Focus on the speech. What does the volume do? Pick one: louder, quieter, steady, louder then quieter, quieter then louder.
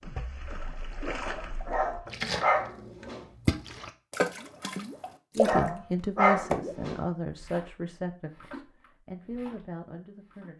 quieter then louder.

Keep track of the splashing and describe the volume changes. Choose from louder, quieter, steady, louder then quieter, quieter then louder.
louder then quieter.